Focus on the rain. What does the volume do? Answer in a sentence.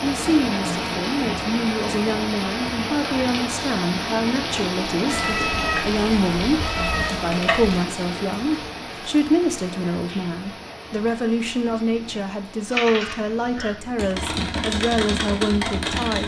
The loudness of the rain goes down.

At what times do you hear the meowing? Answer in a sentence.
You can hear the meowing from 5.1 to 7.8 s.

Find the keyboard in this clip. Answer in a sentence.
The keyboard can be heard from 12.7 to 16.2 s.